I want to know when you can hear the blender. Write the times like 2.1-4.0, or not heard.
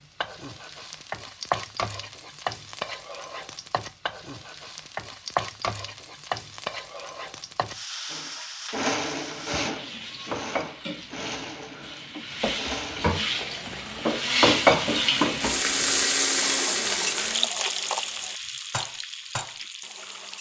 8.1-17.5.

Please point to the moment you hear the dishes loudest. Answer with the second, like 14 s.
15 s.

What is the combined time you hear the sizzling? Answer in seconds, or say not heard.
20 s.